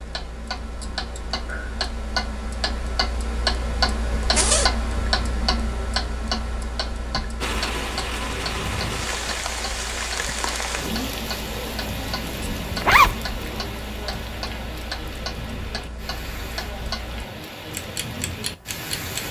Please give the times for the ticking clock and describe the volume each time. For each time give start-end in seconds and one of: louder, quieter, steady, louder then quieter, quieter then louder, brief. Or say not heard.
0.0-19.2 quieter.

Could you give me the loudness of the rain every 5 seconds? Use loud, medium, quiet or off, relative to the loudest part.
off, loud, loud, medium.